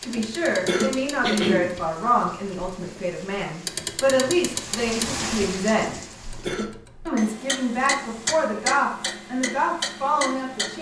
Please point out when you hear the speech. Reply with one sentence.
The speech can be heard from 0.0 to 6.0 s and from 7.0 to 10.7 s.